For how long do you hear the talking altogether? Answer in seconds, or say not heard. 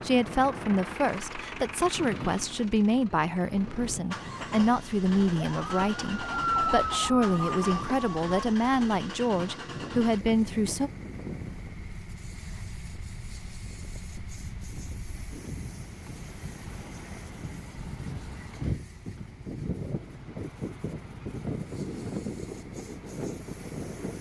11 s.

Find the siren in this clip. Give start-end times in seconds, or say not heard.
5.3-8.6.